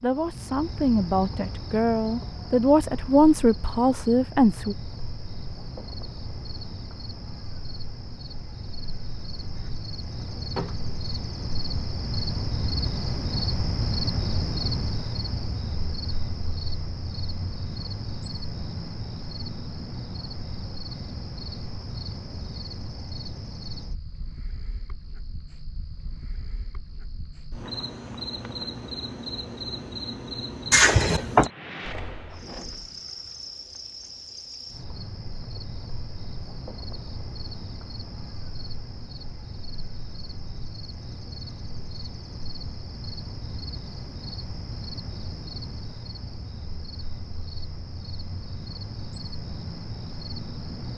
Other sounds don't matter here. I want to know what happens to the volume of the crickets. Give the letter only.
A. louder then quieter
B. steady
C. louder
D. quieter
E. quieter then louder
A.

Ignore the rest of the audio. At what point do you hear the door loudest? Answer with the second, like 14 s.
31 s.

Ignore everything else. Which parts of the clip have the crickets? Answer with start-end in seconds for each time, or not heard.
0.0-50.9.